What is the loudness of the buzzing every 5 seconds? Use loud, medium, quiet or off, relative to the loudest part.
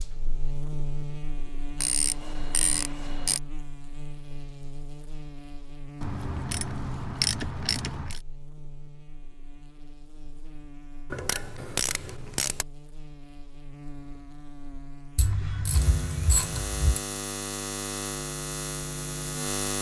medium, quiet, quiet, loud.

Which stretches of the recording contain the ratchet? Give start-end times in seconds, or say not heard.
1.8-3.4, 6.0-8.2, 11.1-12.7, 15.2-17.0.